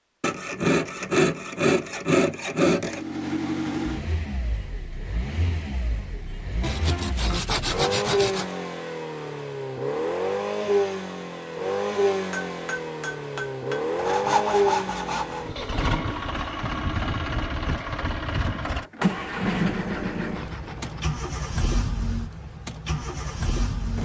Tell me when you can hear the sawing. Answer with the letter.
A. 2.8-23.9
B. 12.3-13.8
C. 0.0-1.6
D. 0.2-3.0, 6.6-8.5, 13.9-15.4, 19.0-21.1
D.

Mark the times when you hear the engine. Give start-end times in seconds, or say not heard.
2.8-23.9.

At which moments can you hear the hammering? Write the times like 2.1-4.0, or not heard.
12.3-13.8.